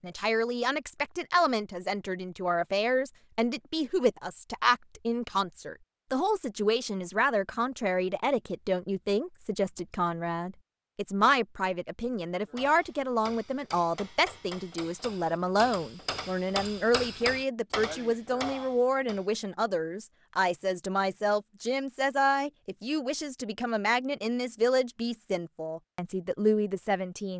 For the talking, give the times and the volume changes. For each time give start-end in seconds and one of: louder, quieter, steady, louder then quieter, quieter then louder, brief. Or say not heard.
0.0-27.3 steady.